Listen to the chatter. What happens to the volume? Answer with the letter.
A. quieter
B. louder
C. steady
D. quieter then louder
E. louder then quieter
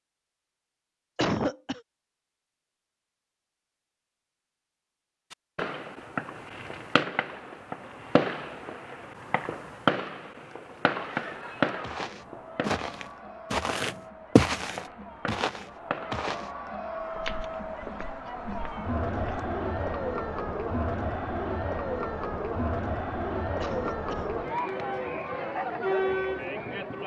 B.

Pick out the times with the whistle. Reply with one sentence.
You can't hear the whistle here.